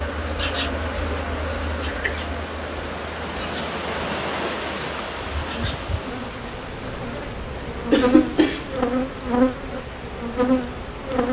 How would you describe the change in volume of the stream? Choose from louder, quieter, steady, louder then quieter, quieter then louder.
louder then quieter.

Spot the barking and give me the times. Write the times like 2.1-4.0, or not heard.
not heard.